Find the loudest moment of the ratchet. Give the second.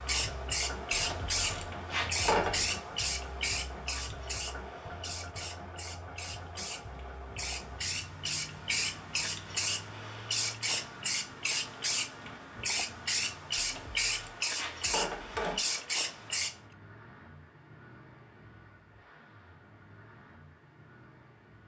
2 s.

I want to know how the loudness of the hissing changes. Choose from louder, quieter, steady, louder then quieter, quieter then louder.
quieter then louder.